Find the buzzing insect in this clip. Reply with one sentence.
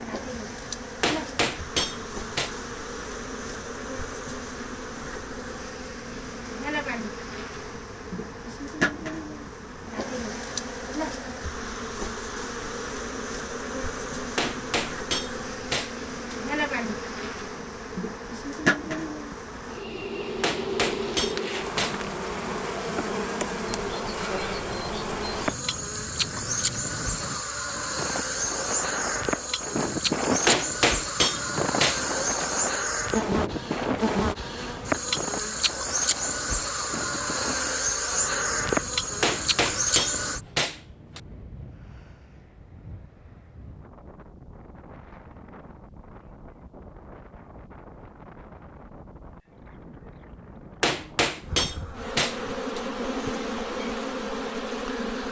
You can hear the buzzing insect from 0.0 to 40.4 s and from 51.4 to 55.2 s.